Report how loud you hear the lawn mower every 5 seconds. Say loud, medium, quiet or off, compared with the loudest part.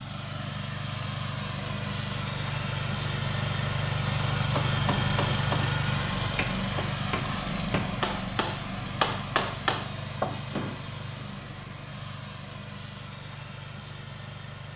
loud, loud, medium.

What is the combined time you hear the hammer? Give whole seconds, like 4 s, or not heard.
6 s.